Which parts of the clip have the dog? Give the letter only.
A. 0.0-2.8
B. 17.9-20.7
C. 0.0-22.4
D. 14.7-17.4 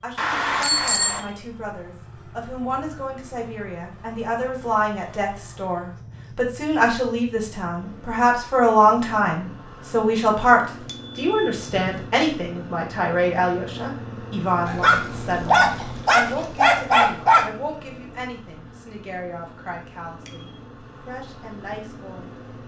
D.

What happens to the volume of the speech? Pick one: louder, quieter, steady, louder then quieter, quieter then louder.
louder then quieter.